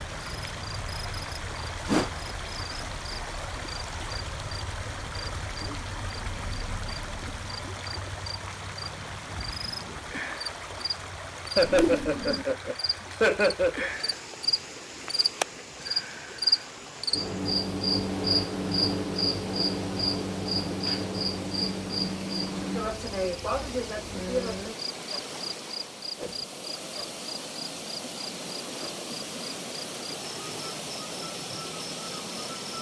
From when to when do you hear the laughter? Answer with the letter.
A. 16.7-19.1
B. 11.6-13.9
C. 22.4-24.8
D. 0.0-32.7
B.